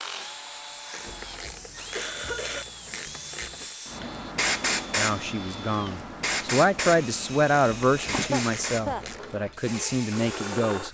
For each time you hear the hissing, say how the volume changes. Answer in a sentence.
You can hear the hissing from 0.1 to 10.8 s, getting louder then quieter.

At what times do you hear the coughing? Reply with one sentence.
You can hear the coughing from 0.8 to 2.6 s and from 8.1 to 9.1 s.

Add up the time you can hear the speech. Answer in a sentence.
The speech can be heard for 6 seconds in total.